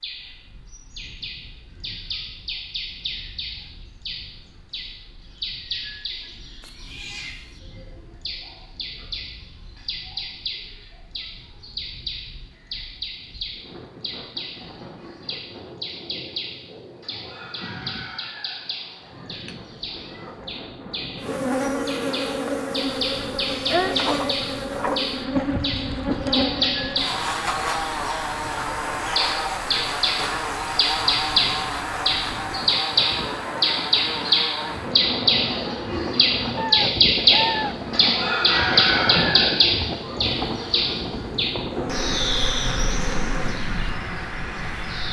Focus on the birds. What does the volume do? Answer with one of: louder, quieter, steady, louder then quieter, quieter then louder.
louder.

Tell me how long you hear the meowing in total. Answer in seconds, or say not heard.
3 s.